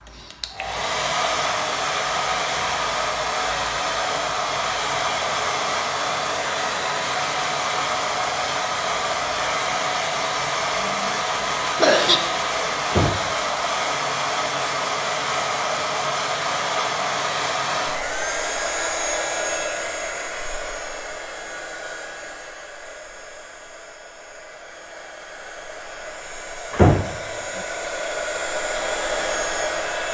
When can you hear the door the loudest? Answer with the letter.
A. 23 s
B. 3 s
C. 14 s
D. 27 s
D.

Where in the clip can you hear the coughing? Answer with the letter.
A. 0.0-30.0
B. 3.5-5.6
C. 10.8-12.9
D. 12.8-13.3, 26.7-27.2
C.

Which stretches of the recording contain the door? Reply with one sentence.
You can hear the door from 12.8 to 13.3 s and from 26.7 to 27.2 s.